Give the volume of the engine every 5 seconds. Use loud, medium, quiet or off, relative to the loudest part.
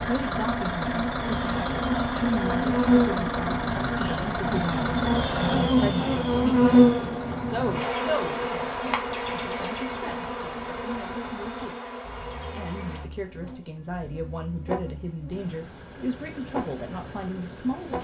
loud, medium, quiet, quiet.